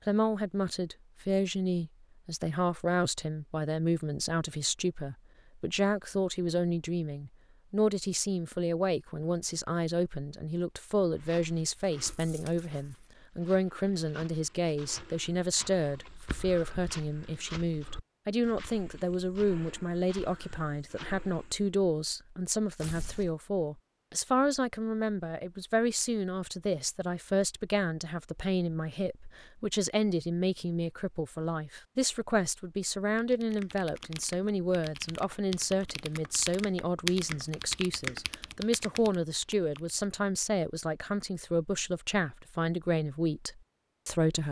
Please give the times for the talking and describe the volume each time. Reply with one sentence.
You can hear the talking from 0.1 to 44.4 s, at a steady volume.